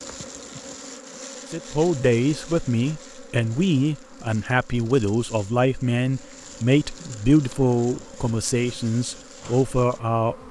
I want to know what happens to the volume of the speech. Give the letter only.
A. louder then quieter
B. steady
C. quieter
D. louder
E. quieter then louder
B.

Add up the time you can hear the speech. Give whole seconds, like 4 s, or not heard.
9 s.